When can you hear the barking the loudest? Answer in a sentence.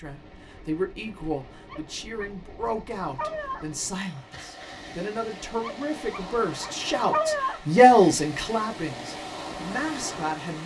The loudest moment of the barking is at 7 seconds.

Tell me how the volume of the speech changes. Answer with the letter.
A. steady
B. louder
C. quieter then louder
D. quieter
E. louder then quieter
E.